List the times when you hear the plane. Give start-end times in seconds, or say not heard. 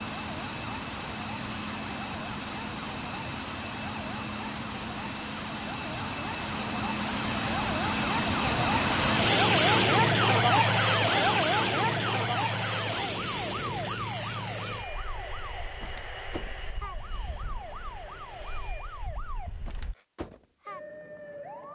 0.0-19.9.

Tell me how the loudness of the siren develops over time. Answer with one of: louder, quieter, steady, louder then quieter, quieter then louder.
louder then quieter.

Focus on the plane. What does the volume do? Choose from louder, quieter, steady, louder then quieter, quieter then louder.
louder then quieter.